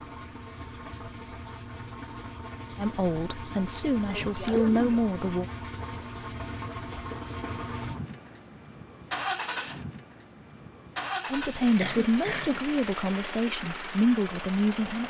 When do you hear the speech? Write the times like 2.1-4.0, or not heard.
2.8-5.5, 11.3-15.0.